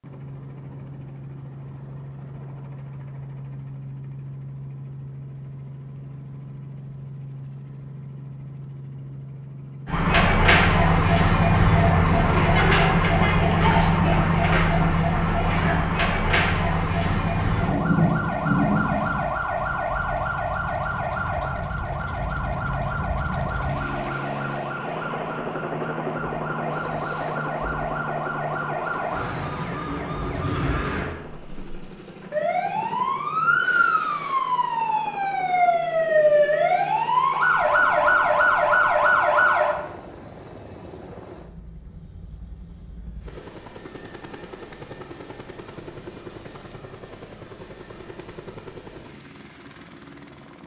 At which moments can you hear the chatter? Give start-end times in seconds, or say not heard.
not heard.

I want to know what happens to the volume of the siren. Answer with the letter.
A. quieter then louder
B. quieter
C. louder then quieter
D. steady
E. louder
A.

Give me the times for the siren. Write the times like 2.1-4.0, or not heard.
9.8-39.8.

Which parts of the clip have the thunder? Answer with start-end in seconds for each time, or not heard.
17.2-19.2.